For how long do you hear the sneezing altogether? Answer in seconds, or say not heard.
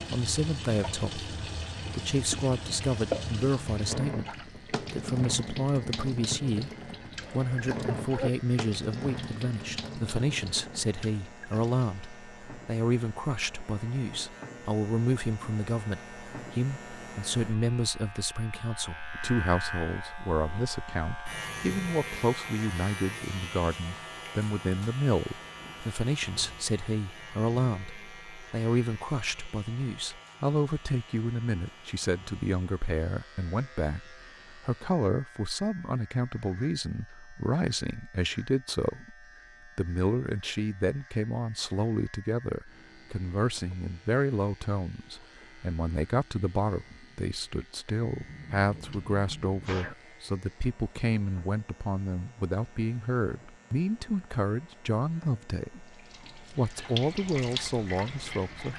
3 s.